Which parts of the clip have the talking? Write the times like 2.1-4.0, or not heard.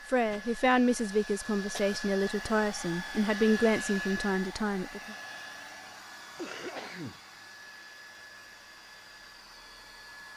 0.1-5.2.